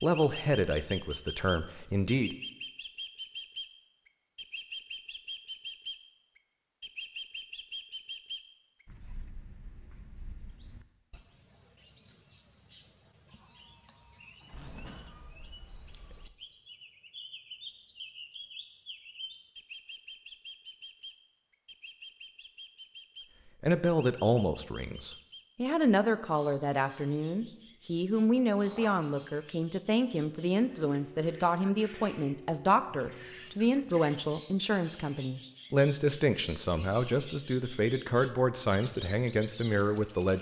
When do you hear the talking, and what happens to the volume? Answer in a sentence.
The talking can be heard briefly from 0.0 to 2.4 s; and from 23.6 to 40.3 s, at a steady volume.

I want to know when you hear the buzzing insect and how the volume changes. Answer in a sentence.
The buzzing insect can't be heard in this clip.